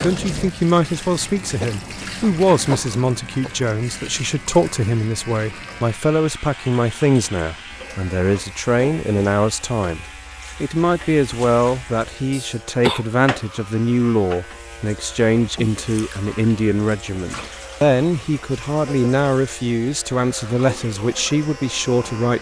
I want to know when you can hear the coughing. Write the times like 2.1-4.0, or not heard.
1.6-4.1, 12.3-13.1, 15.6-16.2.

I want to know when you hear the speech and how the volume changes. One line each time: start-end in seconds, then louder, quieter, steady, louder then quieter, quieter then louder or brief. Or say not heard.
0.0-22.3 steady.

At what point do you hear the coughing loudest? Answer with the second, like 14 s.
13 s.